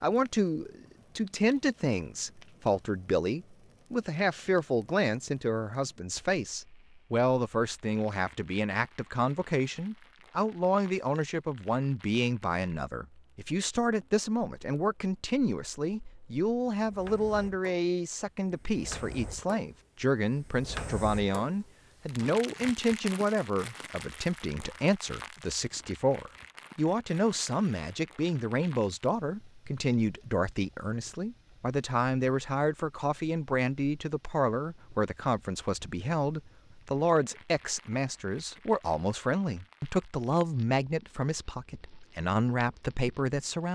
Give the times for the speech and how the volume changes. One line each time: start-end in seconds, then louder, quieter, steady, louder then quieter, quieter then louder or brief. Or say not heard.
0.0-43.7 steady.